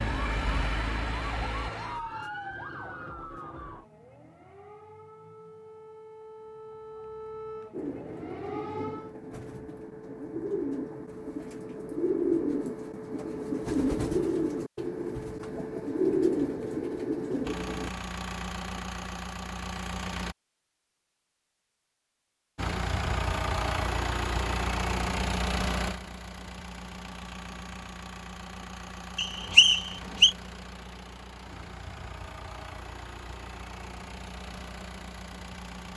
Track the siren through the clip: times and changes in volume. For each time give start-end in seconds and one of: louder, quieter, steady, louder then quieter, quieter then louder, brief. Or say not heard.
0.0-9.2 quieter then louder.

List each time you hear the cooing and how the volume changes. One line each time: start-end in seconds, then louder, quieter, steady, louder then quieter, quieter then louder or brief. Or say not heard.
7.7-17.9 louder.